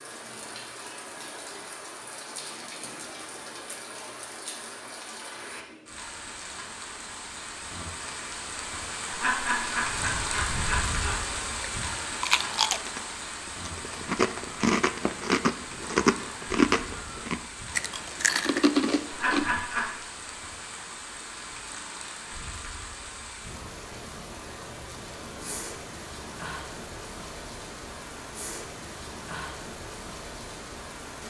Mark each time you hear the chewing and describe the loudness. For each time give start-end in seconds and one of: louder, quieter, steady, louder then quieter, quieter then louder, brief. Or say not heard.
9.9-19.4 louder.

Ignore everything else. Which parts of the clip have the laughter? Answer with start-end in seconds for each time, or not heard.
9.1-11.2, 19.1-19.9.